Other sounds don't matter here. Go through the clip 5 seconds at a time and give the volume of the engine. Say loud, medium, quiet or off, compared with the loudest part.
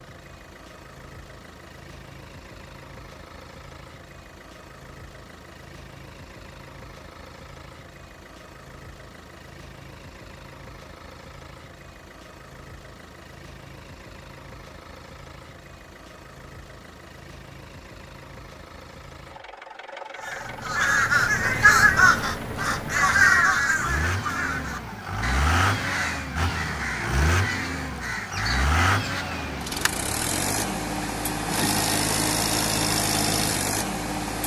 quiet, quiet, quiet, quiet, medium, loud, loud.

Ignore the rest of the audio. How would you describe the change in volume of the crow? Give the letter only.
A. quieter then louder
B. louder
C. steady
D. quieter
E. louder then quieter
D.